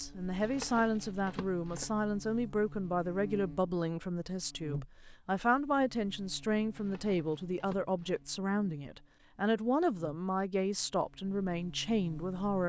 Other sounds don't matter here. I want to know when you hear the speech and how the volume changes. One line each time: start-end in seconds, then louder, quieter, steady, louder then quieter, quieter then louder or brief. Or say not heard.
0.0-12.6 steady.